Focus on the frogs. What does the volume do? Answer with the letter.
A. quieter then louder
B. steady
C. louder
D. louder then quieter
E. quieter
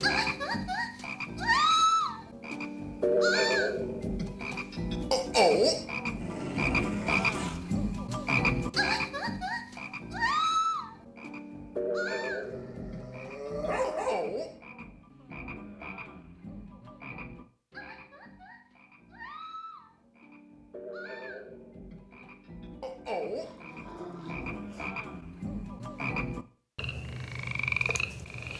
A.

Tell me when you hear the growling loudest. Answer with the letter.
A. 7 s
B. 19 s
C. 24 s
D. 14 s
D.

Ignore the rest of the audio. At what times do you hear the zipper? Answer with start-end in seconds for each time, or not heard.
not heard.